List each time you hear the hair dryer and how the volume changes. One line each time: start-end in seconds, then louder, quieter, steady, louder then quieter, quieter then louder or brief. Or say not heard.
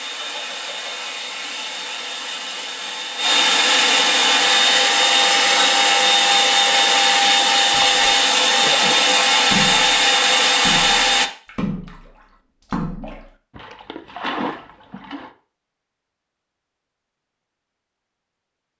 0.0-11.3 louder.